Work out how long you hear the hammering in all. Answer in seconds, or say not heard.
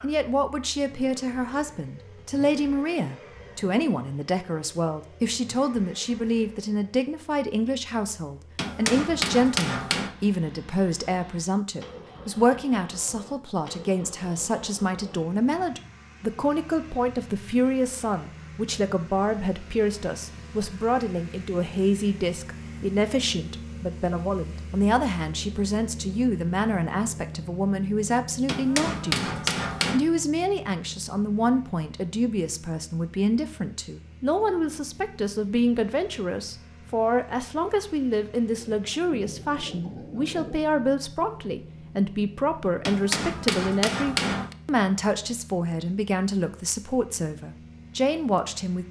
5 s.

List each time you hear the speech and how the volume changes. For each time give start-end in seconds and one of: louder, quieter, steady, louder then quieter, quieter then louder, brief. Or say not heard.
0.0-48.8 steady.